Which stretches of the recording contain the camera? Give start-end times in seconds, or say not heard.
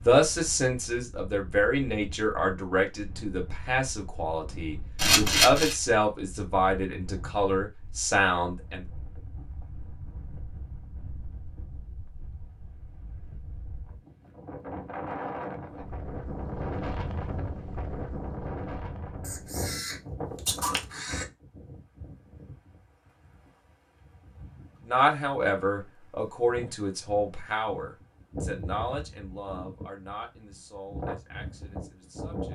5.0-5.8, 19.2-21.2.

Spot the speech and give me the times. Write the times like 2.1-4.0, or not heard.
0.1-8.8, 24.9-32.5.